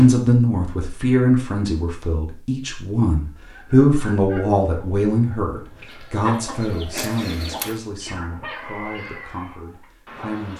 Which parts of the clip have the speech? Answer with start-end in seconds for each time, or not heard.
0.0-10.5.